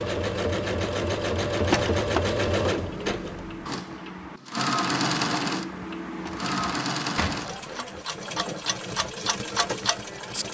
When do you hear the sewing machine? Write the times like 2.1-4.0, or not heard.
0.0-10.4.